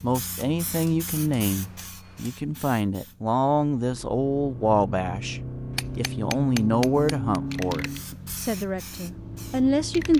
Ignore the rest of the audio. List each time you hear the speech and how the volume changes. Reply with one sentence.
You can hear the speech from 0.0 to 10.1 s, at a steady volume.